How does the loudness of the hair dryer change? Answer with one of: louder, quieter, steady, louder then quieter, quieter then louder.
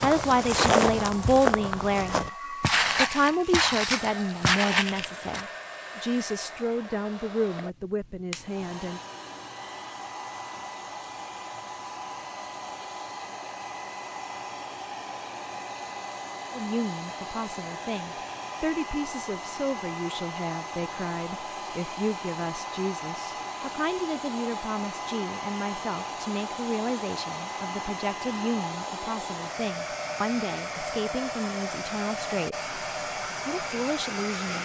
louder.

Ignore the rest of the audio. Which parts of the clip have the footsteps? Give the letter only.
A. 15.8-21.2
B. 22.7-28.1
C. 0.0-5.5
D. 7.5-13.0
C.